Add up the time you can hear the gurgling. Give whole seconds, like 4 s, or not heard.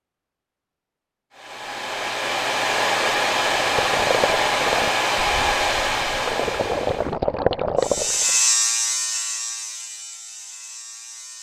5 s.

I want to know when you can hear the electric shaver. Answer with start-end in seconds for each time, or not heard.
7.8-11.3.